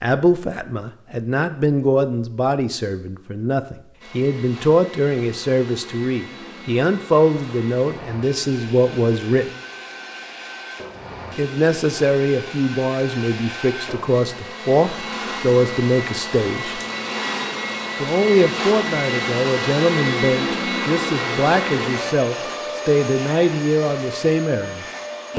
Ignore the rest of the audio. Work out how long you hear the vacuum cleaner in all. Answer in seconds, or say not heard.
21 s.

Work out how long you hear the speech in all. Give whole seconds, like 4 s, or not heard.
22 s.